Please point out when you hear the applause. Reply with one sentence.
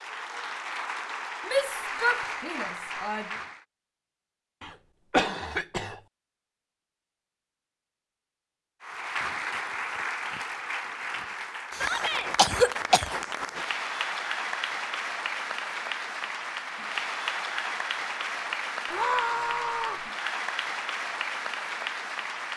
You can hear the applause from 0.0 to 3.6 s and from 8.8 to 22.5 s.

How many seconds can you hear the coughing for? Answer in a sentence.
The coughing can be heard for 3 seconds in total.